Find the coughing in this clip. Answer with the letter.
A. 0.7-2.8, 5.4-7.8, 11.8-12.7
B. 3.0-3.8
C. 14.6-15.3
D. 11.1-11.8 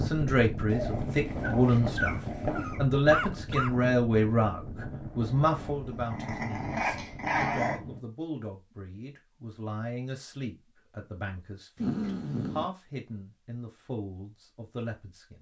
B.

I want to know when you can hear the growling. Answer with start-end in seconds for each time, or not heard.
0.7-2.8, 5.4-7.8, 11.8-12.7.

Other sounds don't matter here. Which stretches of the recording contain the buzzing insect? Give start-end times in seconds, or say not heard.
not heard.